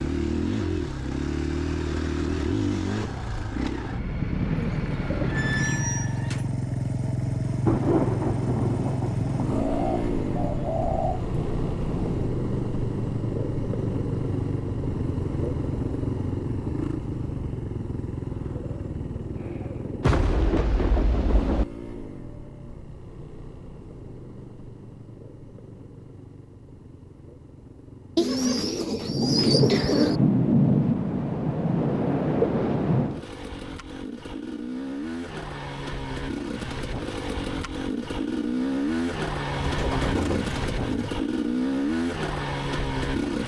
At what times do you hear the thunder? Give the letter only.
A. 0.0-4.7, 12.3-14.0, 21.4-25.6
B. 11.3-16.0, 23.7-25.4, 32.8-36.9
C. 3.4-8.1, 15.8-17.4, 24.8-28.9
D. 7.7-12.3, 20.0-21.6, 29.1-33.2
D.